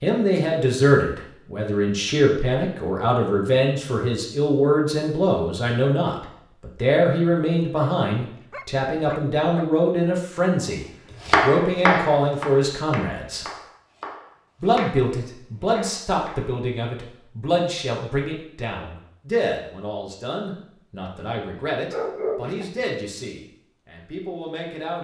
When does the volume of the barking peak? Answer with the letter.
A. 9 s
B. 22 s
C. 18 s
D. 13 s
B.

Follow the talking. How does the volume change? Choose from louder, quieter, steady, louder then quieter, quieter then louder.
quieter.